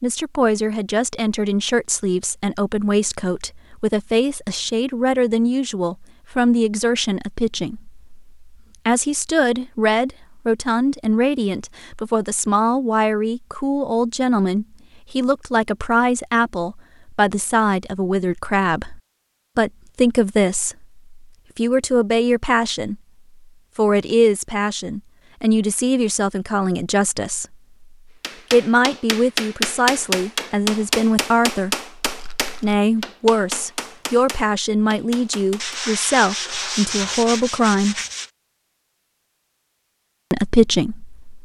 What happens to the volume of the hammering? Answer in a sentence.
The loudness of the hammering goes down.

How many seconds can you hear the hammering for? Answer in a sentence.
You can hear the hammering for 8 seconds altogether.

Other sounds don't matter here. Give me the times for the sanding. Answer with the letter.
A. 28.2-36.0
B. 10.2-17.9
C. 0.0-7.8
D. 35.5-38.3
D.